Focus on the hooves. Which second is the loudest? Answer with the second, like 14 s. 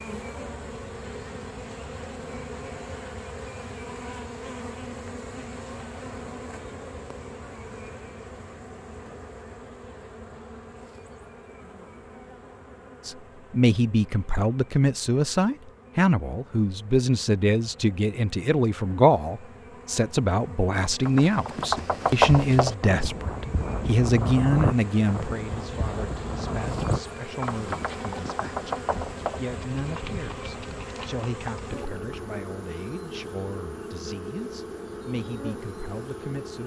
22 s.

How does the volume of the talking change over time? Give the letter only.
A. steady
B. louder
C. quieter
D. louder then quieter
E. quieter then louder
C.